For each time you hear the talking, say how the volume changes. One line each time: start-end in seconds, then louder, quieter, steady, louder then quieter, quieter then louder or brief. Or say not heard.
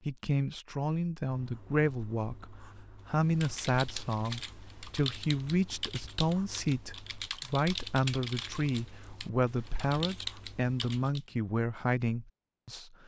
0.1-13.0 steady.